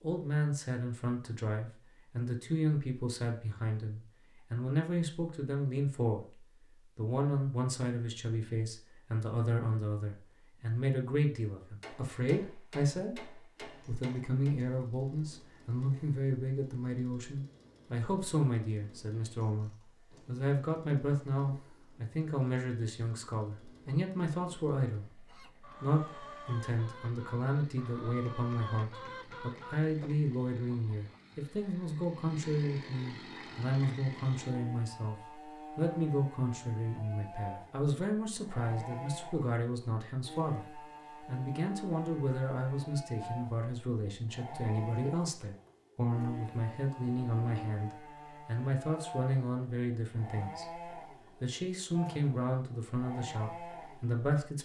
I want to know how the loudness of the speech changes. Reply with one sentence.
The loudness of the speech stays about the same.